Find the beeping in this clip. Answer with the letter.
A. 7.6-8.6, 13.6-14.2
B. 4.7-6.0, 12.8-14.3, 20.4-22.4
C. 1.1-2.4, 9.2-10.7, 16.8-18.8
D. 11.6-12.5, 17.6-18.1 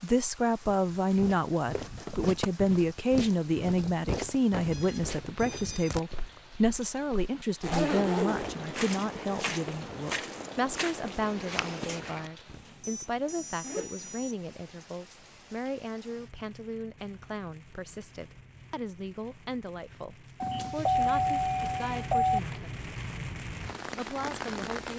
B.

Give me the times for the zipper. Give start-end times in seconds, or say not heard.
7.6-8.6, 13.6-14.2.